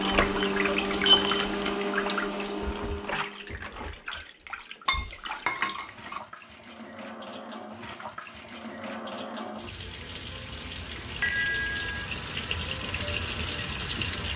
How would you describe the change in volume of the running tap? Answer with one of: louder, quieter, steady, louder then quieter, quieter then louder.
quieter then louder.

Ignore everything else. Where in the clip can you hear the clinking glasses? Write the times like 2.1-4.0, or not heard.
0.0-1.8, 4.8-6.2, 11.2-12.1.